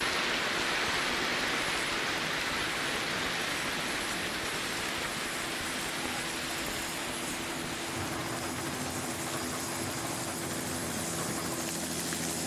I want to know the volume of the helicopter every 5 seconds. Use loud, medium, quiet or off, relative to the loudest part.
medium, loud, loud.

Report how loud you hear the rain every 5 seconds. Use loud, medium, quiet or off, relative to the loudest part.
loud, medium, medium.